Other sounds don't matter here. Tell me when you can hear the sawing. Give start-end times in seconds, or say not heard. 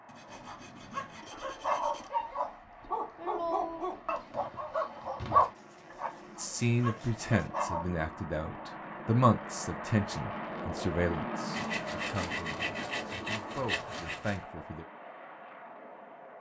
0.1-2.1, 5.5-7.5, 11.5-14.4.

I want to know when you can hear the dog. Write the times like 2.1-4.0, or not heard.
0.3-7.8.